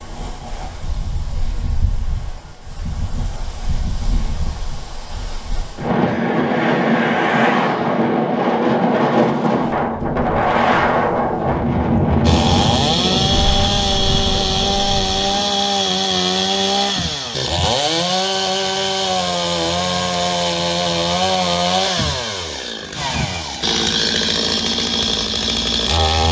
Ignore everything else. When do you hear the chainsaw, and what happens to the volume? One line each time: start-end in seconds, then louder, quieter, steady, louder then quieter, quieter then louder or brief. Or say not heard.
12.2-26.2 steady.